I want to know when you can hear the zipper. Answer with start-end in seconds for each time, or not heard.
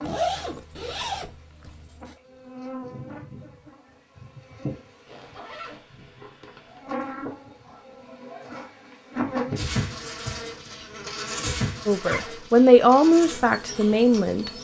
0.0-2.1, 5.0-6.9, 11.9-12.3.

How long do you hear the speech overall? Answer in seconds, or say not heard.
3 s.